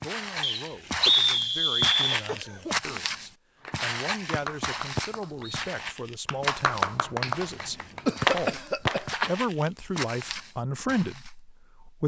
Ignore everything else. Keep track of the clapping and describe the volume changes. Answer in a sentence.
The loudness of the clapping goes down, then up.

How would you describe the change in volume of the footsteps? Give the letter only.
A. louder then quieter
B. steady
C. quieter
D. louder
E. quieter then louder
E.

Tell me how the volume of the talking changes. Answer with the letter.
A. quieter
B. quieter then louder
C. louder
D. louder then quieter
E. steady
C.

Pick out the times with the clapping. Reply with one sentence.
The clapping can be heard from 3.6 to 9.1 s.